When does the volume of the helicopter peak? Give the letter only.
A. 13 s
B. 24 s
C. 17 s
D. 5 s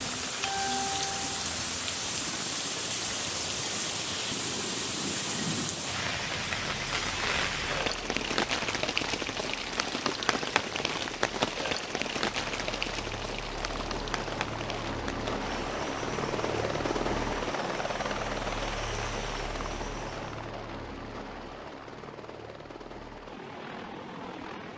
C.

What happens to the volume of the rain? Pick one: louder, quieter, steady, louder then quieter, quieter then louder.
quieter.